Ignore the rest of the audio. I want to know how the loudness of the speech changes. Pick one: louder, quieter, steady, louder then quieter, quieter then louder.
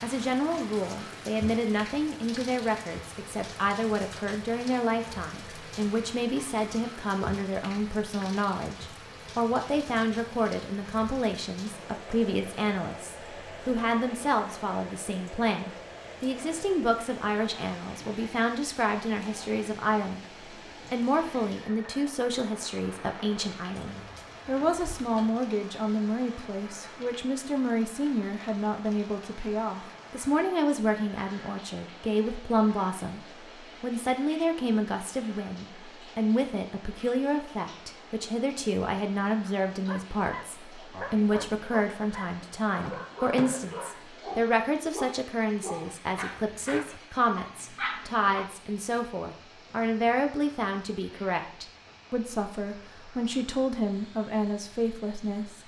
steady.